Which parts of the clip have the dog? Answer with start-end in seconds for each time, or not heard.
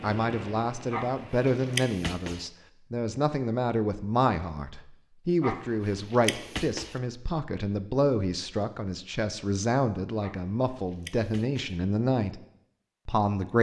0.9-2.5, 5.4-7.0, 10.2-11.8.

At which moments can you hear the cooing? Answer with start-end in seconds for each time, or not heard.
not heard.